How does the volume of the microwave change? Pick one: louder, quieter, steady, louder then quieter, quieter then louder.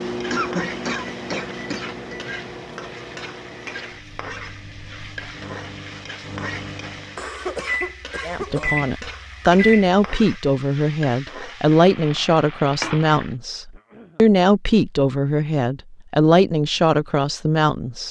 quieter then louder.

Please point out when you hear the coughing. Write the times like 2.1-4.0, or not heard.
0.3-2.1, 7.2-8.9, 13.7-14.2.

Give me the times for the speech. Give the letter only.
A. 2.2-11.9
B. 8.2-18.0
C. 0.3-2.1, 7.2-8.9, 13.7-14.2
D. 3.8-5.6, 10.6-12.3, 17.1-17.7
B.